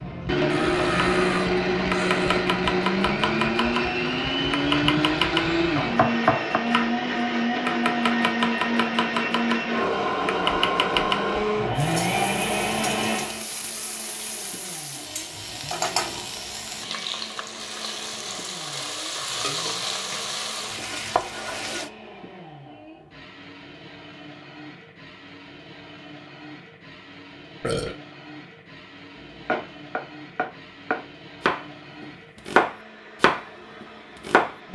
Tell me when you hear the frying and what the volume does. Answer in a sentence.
The frying can be heard from 11.8 to 21.9 s, getting louder.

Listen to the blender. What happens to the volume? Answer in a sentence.
The loudness of the blender goes down.